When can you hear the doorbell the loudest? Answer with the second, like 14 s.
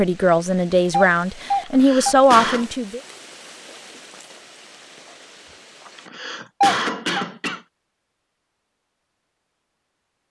7 s.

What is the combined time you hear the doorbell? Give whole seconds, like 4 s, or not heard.
2 s.